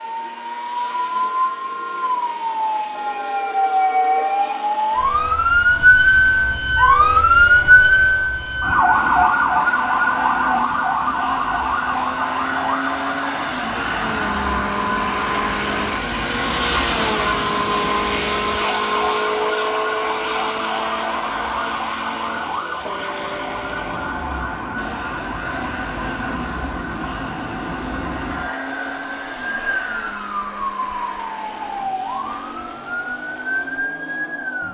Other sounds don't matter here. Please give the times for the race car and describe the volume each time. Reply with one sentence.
The race car can be heard from 0.0 to 34.6 s, getting louder then quieter.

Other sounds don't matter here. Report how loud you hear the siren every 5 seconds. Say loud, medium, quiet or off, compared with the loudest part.
medium, loud, medium, quiet, quiet, quiet, quiet.